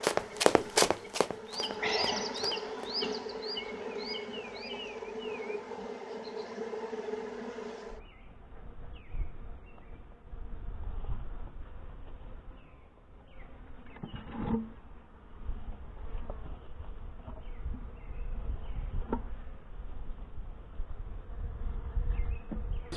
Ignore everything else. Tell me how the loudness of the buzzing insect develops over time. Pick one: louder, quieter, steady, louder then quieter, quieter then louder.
quieter then louder.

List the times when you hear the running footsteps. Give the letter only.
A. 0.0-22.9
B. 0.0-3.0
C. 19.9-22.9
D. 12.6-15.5
B.